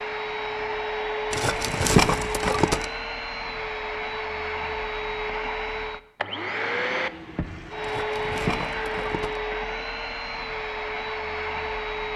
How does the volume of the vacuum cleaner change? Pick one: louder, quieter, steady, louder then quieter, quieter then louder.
steady.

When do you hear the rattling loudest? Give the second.
2 s.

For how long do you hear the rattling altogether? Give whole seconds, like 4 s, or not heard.
3 s.